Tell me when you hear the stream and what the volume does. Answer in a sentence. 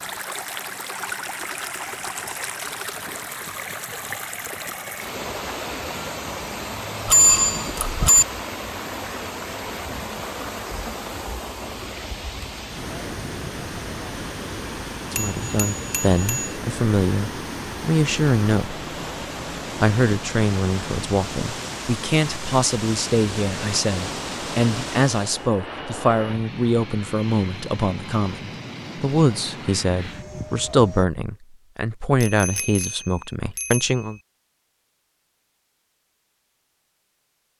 The stream can be heard from 0.0 to 25.5 s, at a steady volume.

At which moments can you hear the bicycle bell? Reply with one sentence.
The bicycle bell can be heard from 7.0 to 8.2 s, from 15.2 to 16.5 s and from 32.2 to 34.0 s.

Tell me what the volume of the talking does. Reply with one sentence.
The volume of the talking stays about the same.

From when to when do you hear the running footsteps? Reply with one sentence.
The running footsteps can't be heard in this clip.